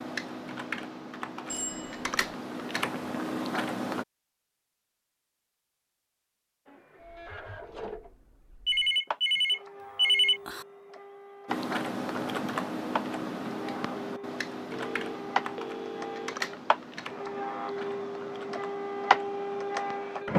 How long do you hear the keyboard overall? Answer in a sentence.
You can hear the keyboard for 13 seconds altogether.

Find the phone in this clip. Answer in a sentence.
You can hear the phone from 1.5 to 2.1 s, from 8.7 to 10.7 s and from 14.7 to 16.4 s.